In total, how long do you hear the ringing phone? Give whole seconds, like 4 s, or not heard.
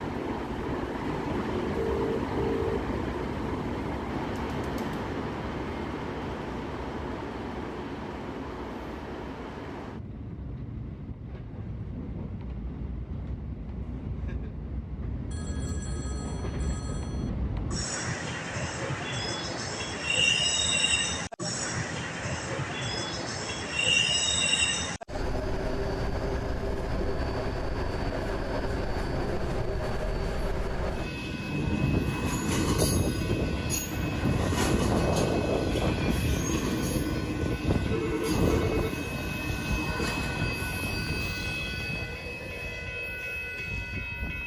4 s.